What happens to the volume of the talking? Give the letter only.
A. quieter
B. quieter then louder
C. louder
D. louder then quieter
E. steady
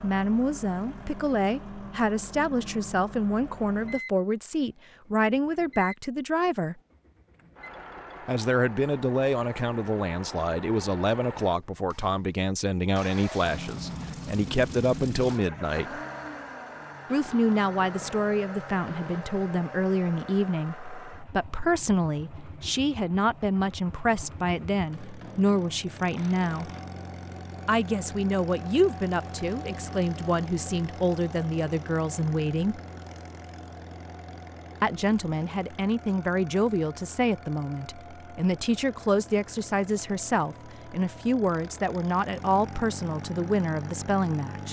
E.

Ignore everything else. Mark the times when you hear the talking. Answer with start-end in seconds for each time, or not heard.
0.0-6.8, 8.2-16.0, 17.1-26.7, 27.6-32.8, 34.8-44.6.